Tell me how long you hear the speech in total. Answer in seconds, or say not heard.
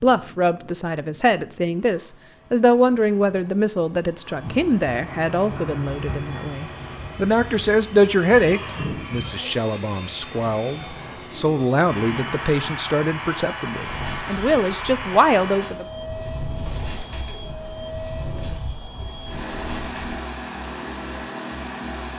16 s.